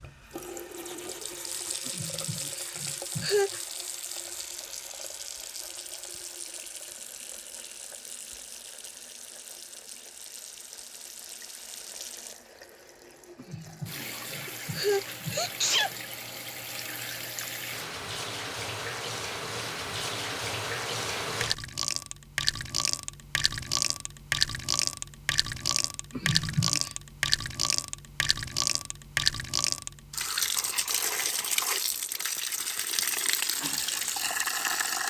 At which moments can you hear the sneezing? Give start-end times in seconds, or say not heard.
1.9-3.6, 13.3-15.9, 26.1-26.9.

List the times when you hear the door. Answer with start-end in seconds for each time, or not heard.
not heard.